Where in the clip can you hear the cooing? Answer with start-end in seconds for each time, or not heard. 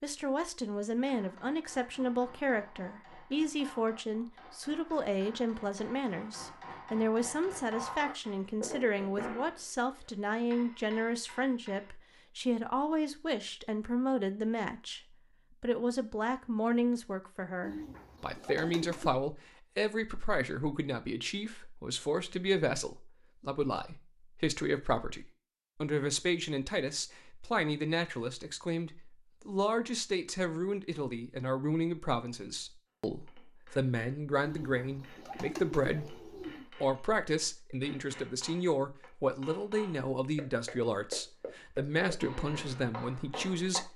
17.6-19.1, 34.5-36.6.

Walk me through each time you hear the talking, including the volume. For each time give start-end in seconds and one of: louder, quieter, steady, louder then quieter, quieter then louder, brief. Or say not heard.
0.0-43.9 steady.